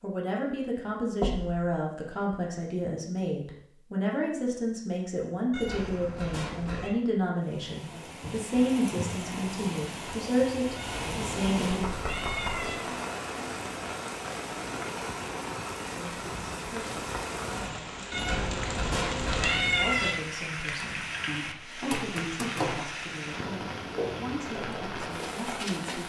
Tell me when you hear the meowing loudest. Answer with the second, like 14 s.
20 s.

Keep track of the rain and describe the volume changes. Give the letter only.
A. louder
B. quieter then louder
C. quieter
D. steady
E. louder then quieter
D.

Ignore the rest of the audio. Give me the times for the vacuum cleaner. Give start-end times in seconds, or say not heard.
not heard.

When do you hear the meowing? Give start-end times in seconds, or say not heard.
5.5-7.0, 10.8-12.8, 18.1-20.1.